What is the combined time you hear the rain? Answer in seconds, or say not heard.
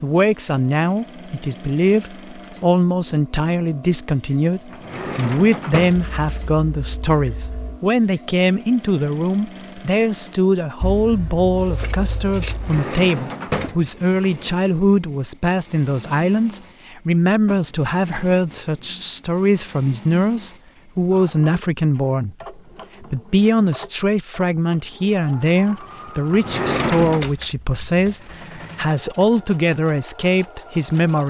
not heard.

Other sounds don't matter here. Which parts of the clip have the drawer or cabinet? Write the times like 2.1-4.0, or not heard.
4.7-6.2, 12.5-14.5, 26.3-27.3.